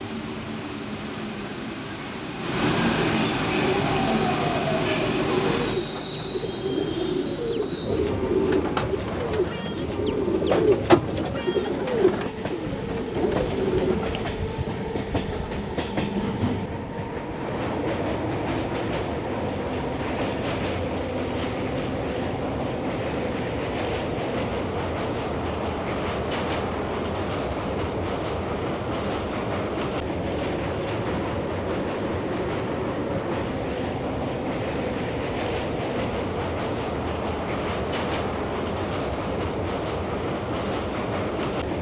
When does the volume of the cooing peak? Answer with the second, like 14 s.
11 s.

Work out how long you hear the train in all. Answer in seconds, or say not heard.
42 s.